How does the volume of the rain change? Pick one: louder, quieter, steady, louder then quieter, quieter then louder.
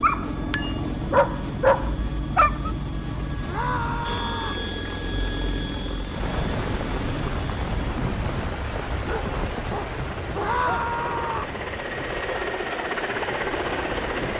quieter.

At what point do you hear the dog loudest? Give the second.
2 s.